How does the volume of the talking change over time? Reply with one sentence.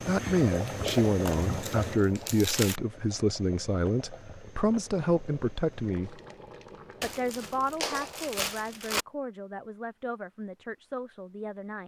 The volume of the talking goes down.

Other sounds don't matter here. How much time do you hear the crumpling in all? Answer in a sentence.
The crumpling can be heard for 4 seconds in total.